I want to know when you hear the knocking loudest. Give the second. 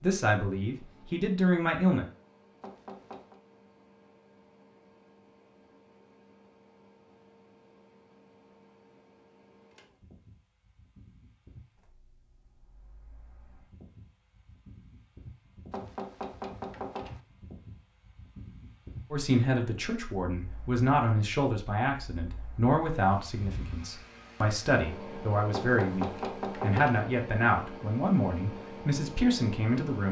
27 s.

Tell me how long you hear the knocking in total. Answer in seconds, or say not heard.
4 s.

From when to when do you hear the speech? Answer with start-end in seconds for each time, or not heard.
0.0-2.0, 19.1-30.0.